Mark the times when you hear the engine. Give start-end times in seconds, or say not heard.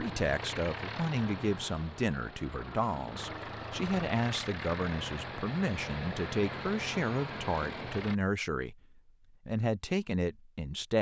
0.0-8.2.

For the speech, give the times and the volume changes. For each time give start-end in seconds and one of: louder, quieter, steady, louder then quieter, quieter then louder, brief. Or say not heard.
0.0-10.9 steady.